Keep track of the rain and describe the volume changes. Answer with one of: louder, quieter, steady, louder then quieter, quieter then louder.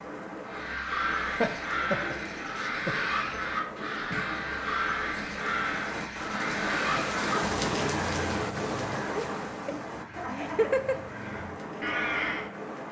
louder then quieter.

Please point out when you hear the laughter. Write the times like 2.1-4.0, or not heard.
1.2-3.1, 9.2-11.1.